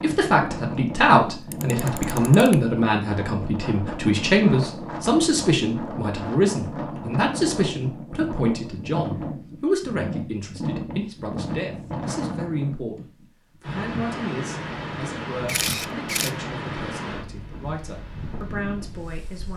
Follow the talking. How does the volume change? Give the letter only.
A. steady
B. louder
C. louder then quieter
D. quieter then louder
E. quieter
E.